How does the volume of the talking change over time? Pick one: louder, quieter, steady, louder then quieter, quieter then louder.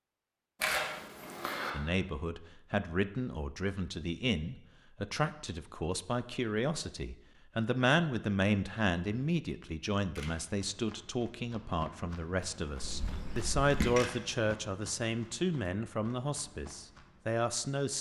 steady.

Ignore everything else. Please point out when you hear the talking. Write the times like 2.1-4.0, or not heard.
1.7-17.9.